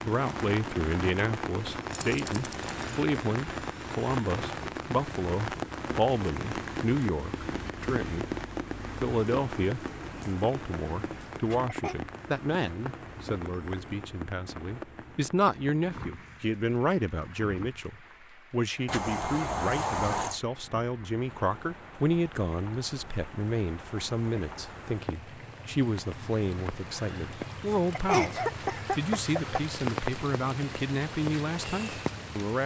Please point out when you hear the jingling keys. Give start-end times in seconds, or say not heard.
1.9-2.9, 18.9-20.4.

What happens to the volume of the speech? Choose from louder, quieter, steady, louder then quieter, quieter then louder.
steady.